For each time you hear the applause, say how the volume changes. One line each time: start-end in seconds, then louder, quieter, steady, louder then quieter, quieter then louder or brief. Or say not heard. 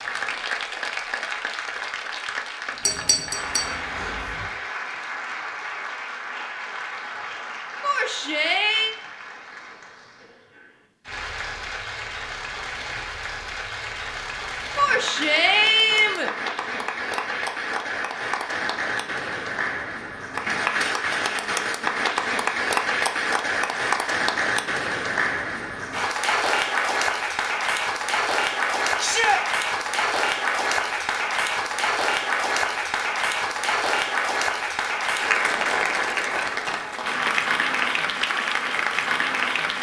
0.0-39.7 louder.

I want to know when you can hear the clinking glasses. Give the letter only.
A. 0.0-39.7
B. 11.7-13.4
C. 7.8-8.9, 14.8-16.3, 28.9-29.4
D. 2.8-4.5
D.